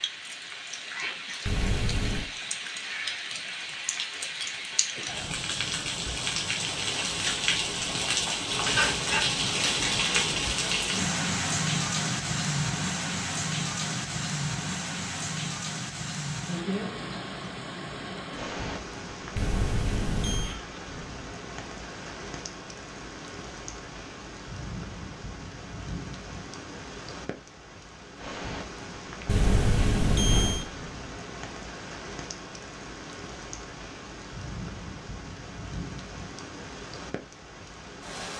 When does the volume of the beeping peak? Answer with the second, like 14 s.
30 s.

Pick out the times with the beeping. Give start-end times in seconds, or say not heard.
1.4-2.2, 19.4-20.6, 29.2-30.6.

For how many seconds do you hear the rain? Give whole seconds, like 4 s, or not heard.
38 s.